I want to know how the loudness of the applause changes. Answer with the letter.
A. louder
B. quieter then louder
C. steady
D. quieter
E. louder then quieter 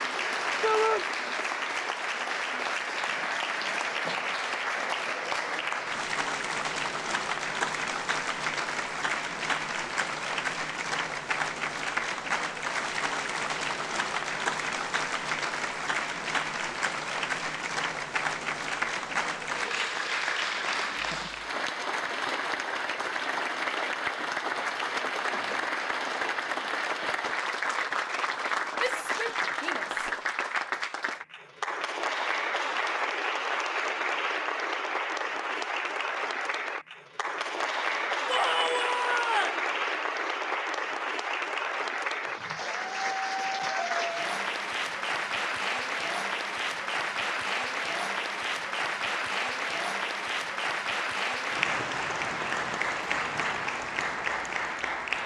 C.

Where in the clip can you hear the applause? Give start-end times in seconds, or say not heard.
0.0-55.2.